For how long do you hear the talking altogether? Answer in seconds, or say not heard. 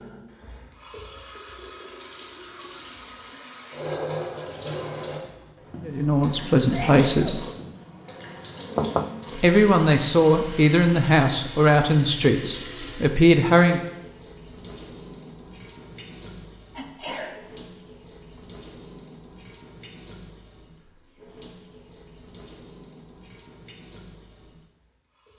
6 s.